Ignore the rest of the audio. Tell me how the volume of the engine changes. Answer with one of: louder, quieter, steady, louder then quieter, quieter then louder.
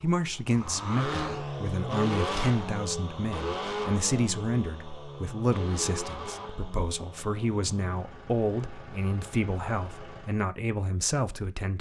quieter.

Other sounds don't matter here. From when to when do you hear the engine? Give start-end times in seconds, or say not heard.
0.0-10.4.